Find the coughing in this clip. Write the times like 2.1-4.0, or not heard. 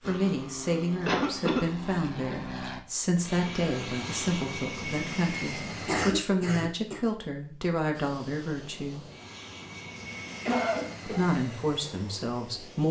1.1-1.6, 5.8-7.0, 10.4-11.2.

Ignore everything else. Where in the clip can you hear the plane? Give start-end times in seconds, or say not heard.
0.0-6.0, 7.9-12.8.